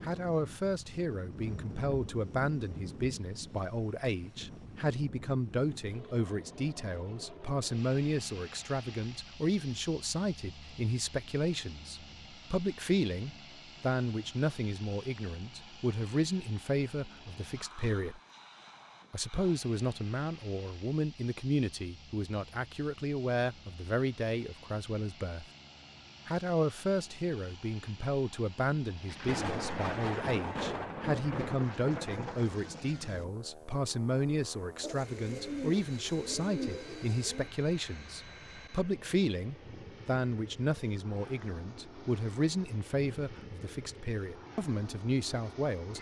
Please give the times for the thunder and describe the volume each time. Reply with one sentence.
You can hear the thunder briefly from 1.4 to 3.2 s; and from 29.1 to 33.2 s, getting quieter.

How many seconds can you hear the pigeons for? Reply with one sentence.
The pigeons can be heard for 3 seconds in total.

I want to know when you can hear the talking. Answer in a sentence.
You can hear the talking from 0.0 to 18.2 s, from 19.1 to 25.4 s and from 26.2 to 45.9 s.